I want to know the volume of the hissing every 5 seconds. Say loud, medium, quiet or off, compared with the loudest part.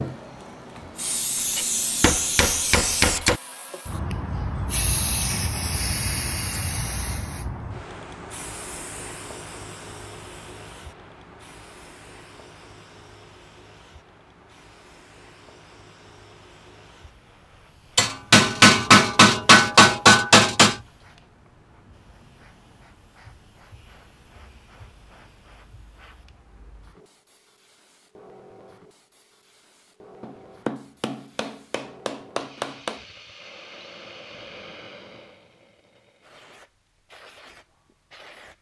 loud, loud, quiet, quiet, quiet, quiet, quiet, quiet.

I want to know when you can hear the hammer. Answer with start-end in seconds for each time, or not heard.
1.6-3.4, 17.9-20.8, 30.2-33.0.